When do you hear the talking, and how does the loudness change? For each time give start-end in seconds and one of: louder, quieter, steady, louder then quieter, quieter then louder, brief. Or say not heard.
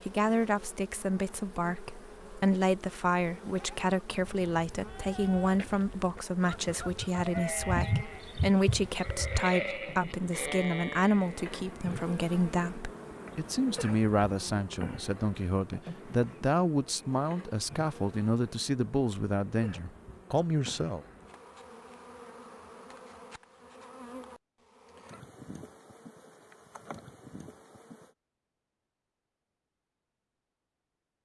0.1-21.0 steady.